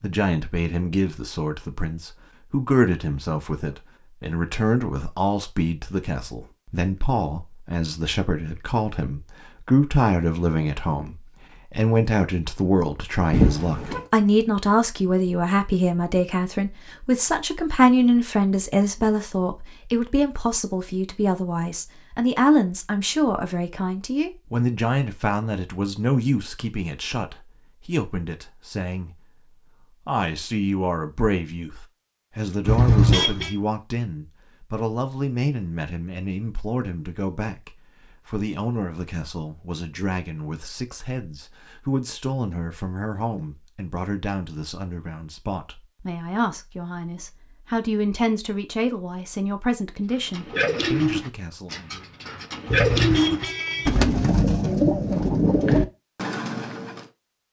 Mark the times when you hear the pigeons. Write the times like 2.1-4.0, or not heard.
50.1-57.0.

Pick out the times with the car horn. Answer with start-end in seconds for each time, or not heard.
13.3-14.0, 32.6-33.5, 52.6-54.0.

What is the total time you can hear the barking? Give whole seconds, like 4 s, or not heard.
not heard.